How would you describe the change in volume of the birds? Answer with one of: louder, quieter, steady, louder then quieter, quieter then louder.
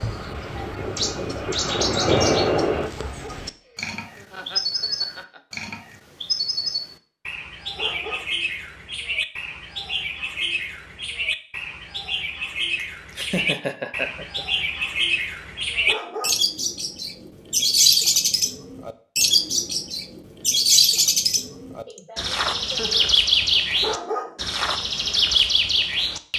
louder.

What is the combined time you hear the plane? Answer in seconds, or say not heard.
3 s.